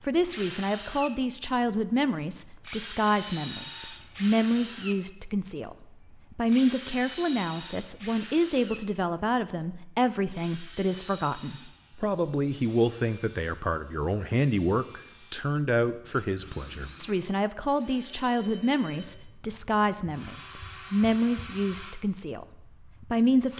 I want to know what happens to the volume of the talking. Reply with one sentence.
The loudness of the talking stays about the same.